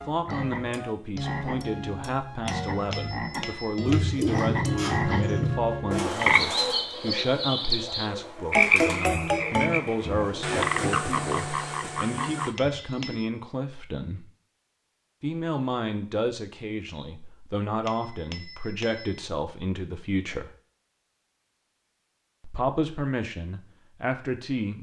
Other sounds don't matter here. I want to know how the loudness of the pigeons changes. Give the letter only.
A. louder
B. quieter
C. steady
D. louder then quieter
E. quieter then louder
B.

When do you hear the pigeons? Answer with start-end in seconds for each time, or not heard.
3.9-13.2.